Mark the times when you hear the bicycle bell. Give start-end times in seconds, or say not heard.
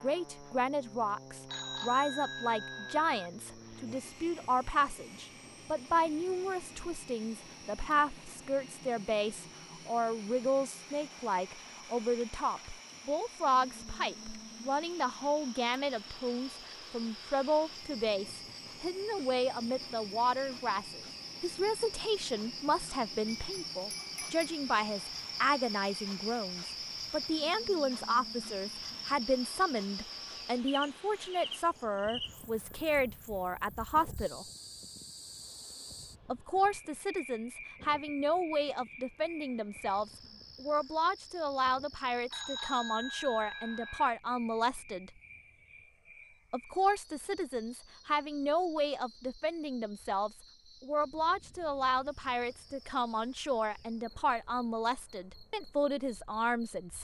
1.4-3.3, 23.2-24.4, 42.3-44.1.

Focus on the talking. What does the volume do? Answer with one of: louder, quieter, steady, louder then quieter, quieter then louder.
steady.